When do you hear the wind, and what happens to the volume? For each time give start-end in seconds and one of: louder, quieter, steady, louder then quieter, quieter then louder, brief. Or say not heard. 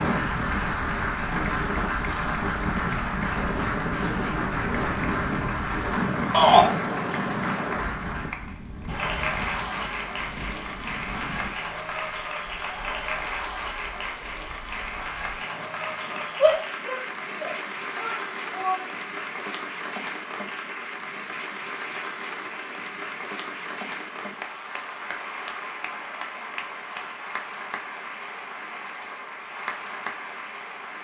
0.0-16.4 quieter.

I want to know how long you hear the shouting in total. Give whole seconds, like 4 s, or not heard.
3 s.